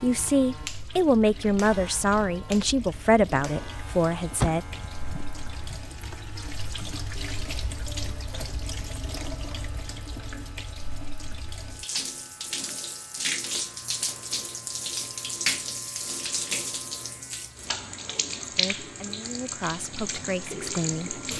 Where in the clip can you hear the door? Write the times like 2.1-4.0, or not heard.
4.3-5.8.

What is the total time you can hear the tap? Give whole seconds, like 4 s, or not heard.
21 s.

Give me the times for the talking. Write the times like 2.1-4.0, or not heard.
0.0-4.7, 18.4-21.2.